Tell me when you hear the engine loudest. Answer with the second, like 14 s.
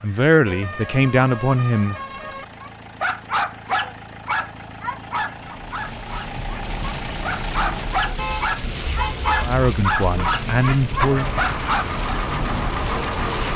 13 s.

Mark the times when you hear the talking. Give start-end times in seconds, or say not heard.
0.0-2.0, 9.4-11.3.